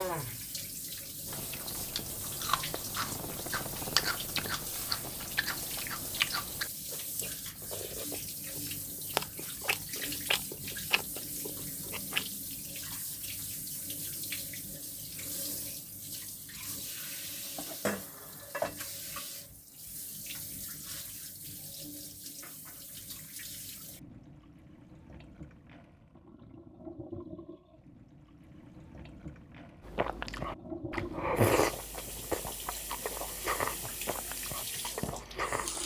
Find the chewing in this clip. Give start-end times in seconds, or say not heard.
1.2-12.3, 29.9-35.8.